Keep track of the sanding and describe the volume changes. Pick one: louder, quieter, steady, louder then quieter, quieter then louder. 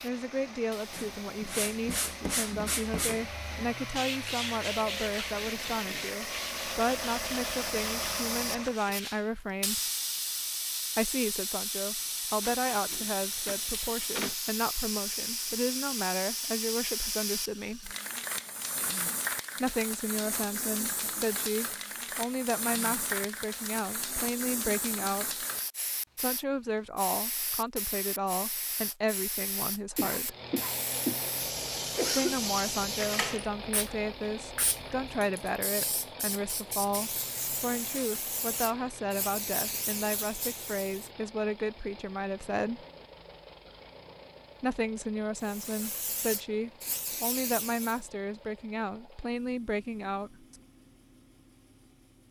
quieter.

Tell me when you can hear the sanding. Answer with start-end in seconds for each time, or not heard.
0.9-9.2.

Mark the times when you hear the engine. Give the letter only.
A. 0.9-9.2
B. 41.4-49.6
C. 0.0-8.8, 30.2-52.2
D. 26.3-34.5
C.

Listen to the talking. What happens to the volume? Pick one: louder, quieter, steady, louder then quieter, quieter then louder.
steady.